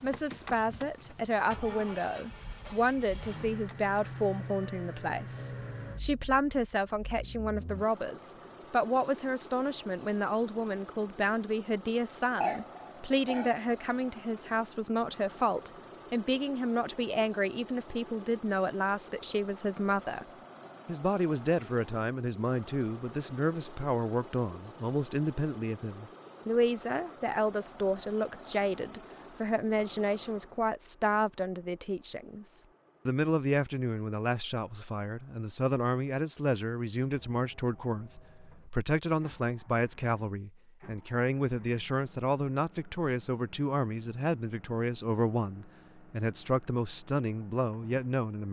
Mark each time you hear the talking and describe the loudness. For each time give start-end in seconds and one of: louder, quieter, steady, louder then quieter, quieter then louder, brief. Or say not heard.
0.0-20.2 steady
20.9-48.4 steady.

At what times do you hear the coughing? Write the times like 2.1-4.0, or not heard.
12.4-13.6.